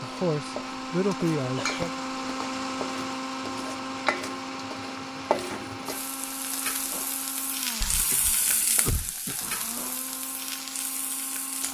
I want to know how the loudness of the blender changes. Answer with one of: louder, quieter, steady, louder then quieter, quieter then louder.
quieter.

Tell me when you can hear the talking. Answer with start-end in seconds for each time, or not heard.
0.0-2.0.